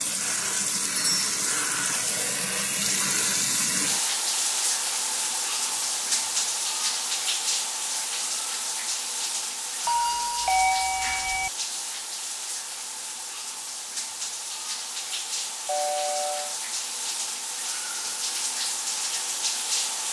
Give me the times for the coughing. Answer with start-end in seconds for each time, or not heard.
not heard.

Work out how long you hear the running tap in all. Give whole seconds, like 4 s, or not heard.
20 s.